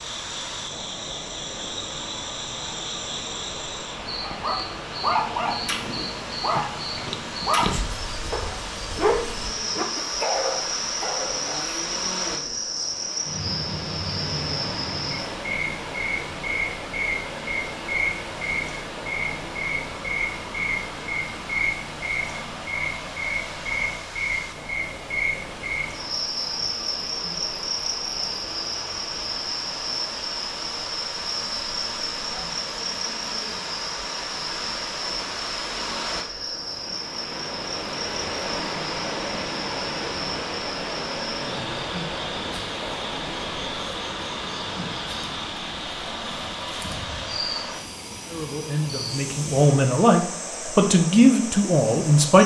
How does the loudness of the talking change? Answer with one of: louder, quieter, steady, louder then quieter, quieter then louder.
louder then quieter.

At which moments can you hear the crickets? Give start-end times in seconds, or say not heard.
0.0-52.4.